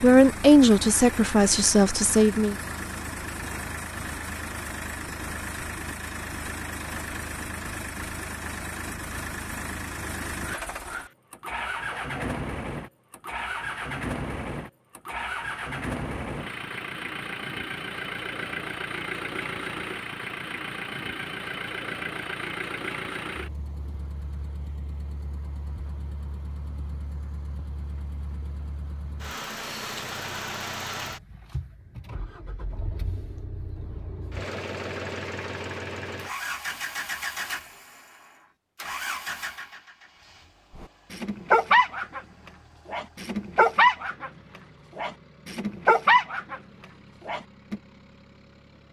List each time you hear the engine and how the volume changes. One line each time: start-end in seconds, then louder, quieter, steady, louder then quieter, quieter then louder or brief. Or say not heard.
0.0-48.8 quieter.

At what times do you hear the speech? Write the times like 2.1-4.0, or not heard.
0.0-2.5.